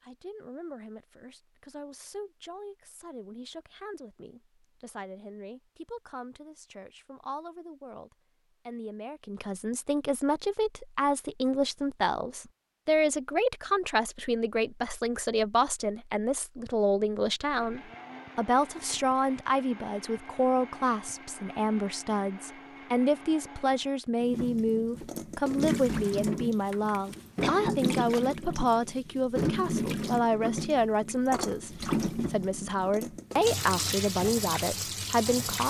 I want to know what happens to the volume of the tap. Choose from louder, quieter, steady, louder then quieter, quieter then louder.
steady.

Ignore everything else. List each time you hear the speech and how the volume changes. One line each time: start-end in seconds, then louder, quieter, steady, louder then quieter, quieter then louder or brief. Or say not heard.
0.0-35.6 louder.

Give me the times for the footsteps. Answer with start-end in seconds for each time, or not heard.
not heard.